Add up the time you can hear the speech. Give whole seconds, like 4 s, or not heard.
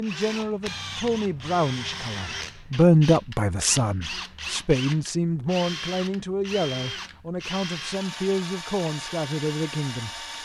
10 s.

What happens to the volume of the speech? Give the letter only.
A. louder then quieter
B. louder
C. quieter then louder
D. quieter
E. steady
A.